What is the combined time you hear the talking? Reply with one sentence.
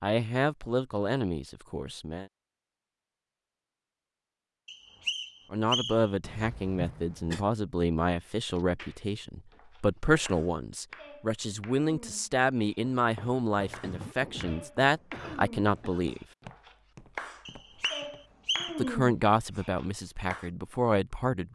The talking can be heard for 16 seconds in total.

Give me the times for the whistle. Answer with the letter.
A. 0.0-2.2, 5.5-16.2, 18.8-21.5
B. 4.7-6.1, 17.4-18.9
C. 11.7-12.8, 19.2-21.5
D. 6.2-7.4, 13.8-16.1
B.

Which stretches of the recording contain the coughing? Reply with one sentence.
You can hear the coughing from 6.2 to 7.4 s and from 13.8 to 16.1 s.